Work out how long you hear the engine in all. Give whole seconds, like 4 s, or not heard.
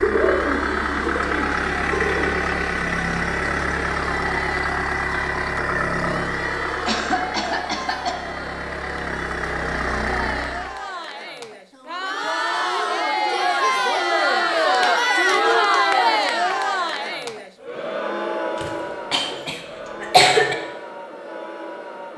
11 s.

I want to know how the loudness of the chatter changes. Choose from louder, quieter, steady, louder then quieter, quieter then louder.
louder then quieter.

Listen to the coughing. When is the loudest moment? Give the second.
20 s.